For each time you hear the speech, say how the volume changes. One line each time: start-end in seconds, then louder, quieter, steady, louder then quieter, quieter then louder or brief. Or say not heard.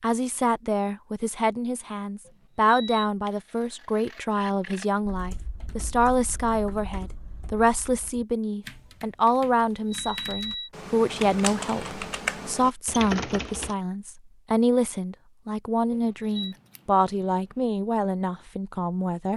0.0-19.3 steady.